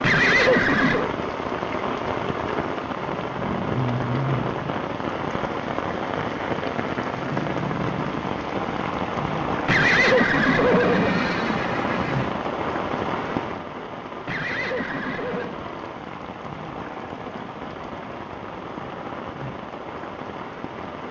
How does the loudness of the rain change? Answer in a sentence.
The loudness of the rain goes down.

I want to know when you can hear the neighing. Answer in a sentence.
The neighing can be heard from 0.0 to 1.1 s, from 9.7 to 12.3 s and from 14.2 to 15.6 s.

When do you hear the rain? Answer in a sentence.
The rain can be heard from 0.0 to 21.0 s.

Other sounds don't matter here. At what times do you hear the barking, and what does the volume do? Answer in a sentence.
You can't hear the barking here.